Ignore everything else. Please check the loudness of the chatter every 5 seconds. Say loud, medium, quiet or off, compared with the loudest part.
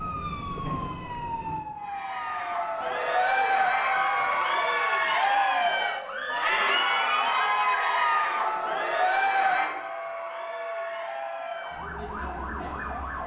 loud, loud, quiet.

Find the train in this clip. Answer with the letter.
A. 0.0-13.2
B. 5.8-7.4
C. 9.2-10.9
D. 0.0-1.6
D.